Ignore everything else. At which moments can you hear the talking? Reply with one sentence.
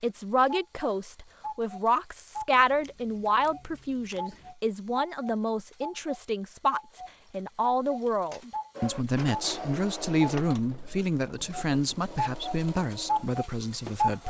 The talking can be heard from 0.0 to 14.2 s.